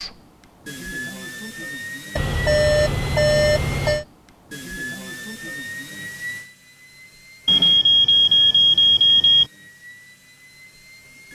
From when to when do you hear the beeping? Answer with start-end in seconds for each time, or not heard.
2.1-4.0, 7.5-9.4.